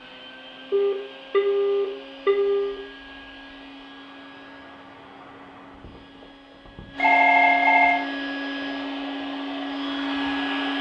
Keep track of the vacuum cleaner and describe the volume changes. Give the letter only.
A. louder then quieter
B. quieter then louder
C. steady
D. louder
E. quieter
B.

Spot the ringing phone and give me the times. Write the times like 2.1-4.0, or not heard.
0.7-2.8, 7.0-8.0.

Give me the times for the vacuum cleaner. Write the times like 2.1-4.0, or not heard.
0.0-10.7.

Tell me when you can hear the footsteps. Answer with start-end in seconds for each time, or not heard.
not heard.